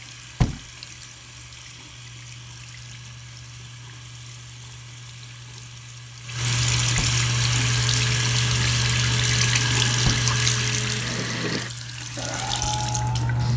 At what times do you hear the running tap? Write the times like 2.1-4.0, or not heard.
0.0-13.5.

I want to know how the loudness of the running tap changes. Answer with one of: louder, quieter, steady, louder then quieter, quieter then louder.
louder then quieter.